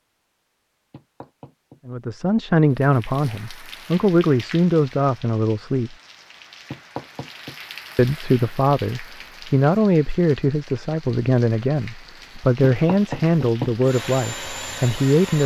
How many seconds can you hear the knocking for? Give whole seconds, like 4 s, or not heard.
3 s.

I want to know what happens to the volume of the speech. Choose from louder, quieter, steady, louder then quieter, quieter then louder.
steady.